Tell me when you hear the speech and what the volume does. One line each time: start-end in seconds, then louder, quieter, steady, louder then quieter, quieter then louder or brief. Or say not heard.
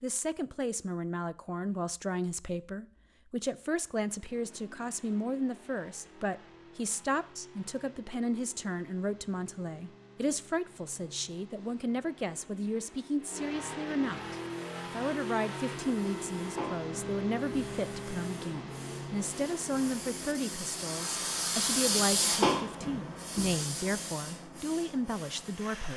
0.0-25.9 steady.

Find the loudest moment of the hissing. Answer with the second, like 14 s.
22 s.